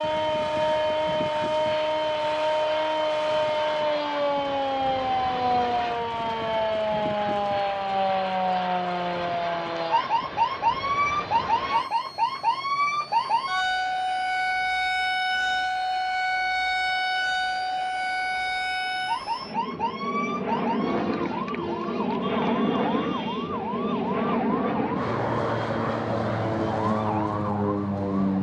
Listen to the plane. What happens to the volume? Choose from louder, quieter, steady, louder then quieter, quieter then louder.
quieter then louder.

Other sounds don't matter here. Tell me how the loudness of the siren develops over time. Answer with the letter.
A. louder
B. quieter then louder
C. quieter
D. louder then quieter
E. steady
C.